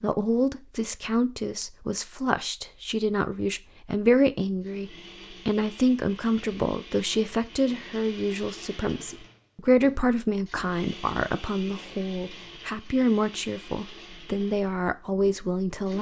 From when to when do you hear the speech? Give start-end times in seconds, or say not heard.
0.0-15.9.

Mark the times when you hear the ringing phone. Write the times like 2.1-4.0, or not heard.
not heard.